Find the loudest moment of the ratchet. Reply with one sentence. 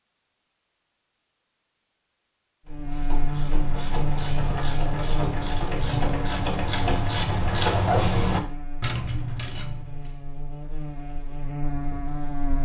The loudest moment of the ratchet is at 8 seconds.